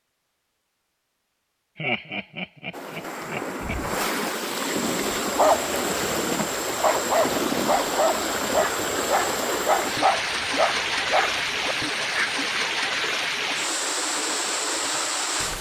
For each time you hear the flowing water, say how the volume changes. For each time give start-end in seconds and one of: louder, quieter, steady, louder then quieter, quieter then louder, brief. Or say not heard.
2.7-15.5 steady.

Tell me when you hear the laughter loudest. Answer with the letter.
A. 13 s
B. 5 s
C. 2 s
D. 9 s
C.